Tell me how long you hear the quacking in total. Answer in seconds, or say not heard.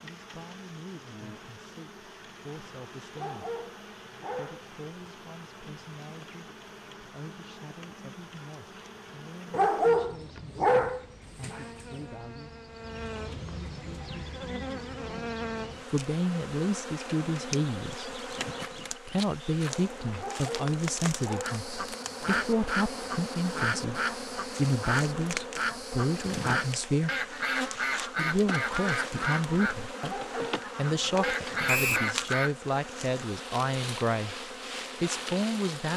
11 s.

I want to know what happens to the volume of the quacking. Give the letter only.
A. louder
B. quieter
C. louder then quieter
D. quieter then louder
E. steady
E.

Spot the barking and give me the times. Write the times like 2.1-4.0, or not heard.
3.1-5.1, 9.5-12.0, 20.1-22.2, 30.1-31.4.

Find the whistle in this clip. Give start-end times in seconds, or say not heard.
31.6-32.1.